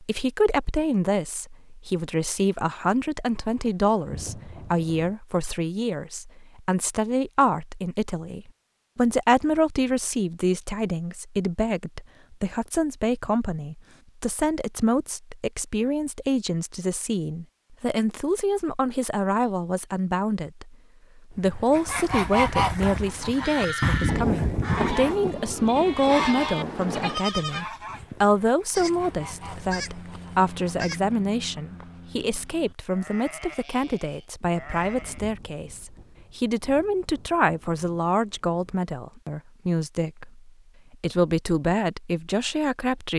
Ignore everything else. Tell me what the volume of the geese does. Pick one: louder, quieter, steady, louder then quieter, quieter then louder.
quieter.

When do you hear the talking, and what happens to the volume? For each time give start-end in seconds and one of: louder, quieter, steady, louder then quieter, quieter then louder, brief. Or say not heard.
0.0-43.1 steady.